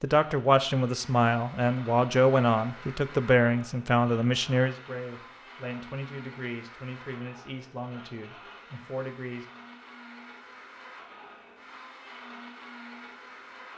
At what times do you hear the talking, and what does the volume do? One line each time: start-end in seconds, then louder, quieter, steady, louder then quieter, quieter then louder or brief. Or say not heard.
0.0-9.4 quieter.